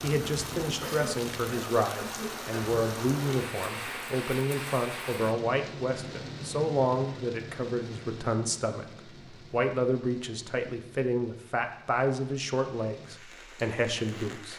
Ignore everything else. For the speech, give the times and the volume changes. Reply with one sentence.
You can hear the speech from 0.0 to 14.5 s, at a steady volume.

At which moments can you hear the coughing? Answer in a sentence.
You can hear the coughing from 0.8 to 2.8 s.